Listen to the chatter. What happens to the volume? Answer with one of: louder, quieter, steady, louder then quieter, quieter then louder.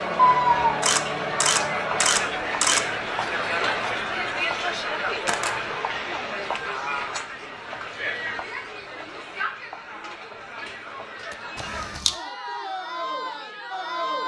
quieter.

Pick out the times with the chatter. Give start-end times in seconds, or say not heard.
0.0-14.2.